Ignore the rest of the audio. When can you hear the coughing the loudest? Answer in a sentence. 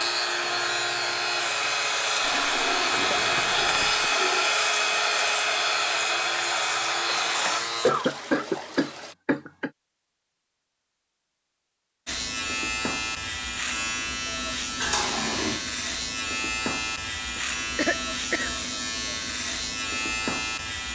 The loudest moment of the coughing is at 8 seconds.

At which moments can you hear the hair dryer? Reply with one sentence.
You can hear the hair dryer from 0.0 to 7.6 s.